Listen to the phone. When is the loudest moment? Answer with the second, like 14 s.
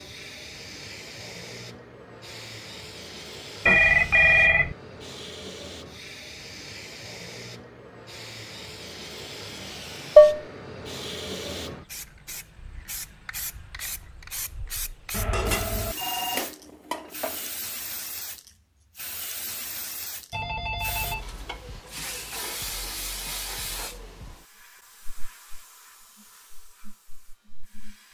4 s.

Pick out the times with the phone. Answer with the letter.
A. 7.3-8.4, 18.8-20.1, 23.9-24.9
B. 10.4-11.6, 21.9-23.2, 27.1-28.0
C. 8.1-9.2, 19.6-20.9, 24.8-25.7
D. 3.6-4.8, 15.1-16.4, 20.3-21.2
D.